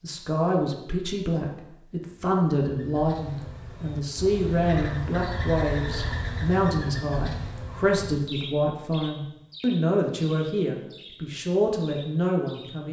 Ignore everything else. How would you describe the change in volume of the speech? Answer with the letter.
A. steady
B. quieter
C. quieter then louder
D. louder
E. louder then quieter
A.